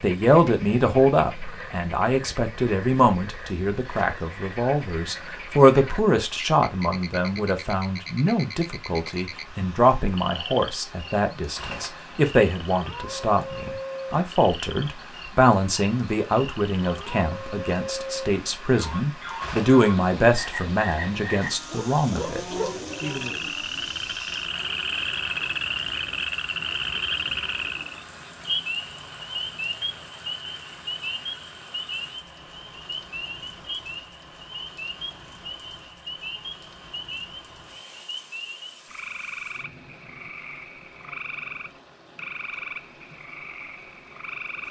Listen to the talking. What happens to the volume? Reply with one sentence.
The volume of the talking stays about the same.